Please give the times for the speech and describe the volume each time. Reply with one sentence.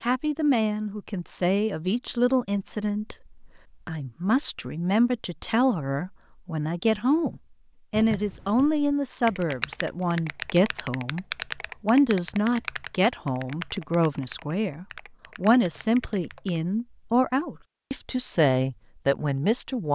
You can hear the speech from 0.0 to 19.8 s, at a steady volume.